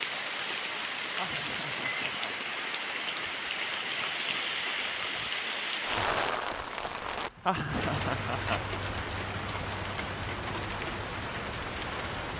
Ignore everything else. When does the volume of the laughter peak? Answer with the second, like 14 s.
8 s.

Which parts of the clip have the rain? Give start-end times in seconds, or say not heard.
0.0-12.3.